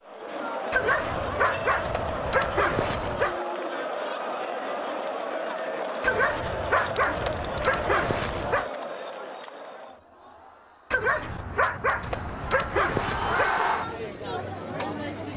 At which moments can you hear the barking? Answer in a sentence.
You can hear the barking from 0.7 to 3.4 s, from 6.0 to 8.7 s and from 10.9 to 13.6 s.